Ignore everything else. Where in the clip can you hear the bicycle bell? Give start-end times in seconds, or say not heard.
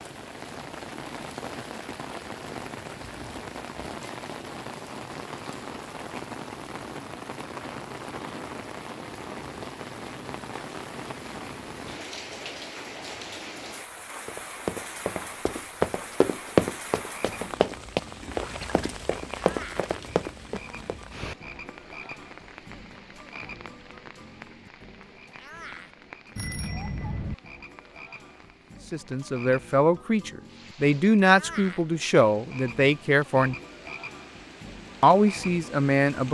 26.4-27.4.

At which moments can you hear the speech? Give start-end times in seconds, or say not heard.
28.9-33.5, 35.0-36.3.